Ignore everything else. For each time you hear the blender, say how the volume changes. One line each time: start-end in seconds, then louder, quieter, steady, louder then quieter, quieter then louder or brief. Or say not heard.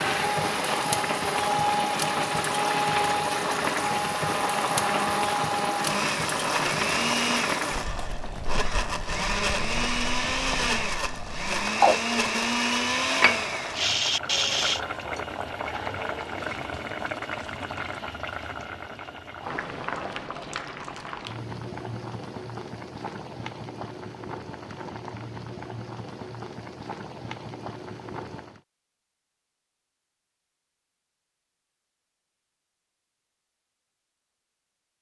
0.0-14.8 steady.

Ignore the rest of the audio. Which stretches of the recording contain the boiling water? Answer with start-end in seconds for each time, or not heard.
0.0-28.6.